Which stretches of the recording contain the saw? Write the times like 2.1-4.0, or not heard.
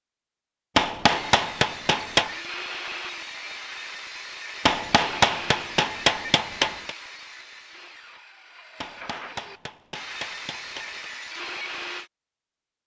1.0-12.1.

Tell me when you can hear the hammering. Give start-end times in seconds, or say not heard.
0.8-2.4, 4.7-7.0, 8.8-11.1.